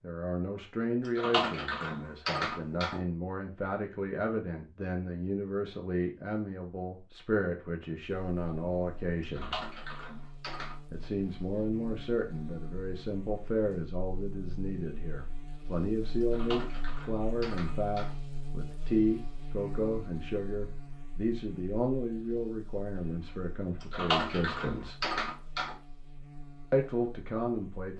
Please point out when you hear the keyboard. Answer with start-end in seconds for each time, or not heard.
1.1-3.0, 9.2-10.8, 16.2-18.1, 23.8-25.8.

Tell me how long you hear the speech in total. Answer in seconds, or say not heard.
25 s.